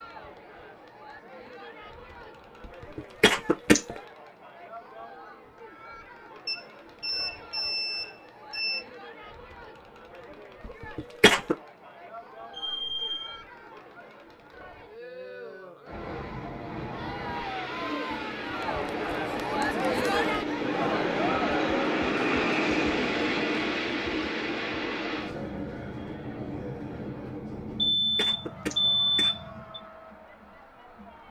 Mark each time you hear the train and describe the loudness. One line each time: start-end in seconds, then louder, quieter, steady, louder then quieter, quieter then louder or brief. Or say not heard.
15.8-27.9 louder then quieter.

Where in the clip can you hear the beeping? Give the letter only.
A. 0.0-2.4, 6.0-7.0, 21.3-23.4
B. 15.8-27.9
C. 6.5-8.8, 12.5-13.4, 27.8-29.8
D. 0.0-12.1
C.